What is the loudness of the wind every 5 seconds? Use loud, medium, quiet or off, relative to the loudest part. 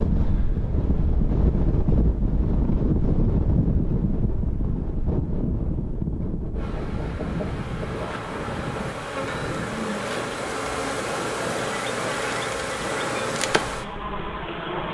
loud, medium, medium.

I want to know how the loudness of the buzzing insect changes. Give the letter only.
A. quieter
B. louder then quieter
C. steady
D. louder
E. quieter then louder
D.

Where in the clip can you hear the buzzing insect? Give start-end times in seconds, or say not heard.
6.5-14.9.